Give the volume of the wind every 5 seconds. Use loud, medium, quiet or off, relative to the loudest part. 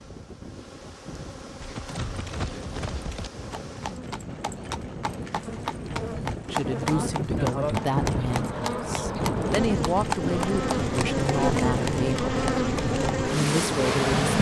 quiet, loud, loud.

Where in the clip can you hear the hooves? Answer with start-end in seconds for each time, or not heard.
1.6-13.2.